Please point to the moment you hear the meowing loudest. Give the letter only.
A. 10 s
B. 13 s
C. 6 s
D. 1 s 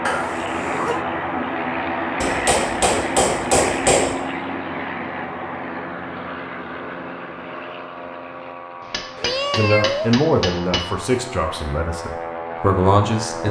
A.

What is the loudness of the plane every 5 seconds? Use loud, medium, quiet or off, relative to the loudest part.
loud, medium, medium.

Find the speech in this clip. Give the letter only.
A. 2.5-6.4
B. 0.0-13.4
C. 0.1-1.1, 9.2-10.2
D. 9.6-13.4
D.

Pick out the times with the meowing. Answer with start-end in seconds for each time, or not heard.
0.1-1.1, 9.2-10.2.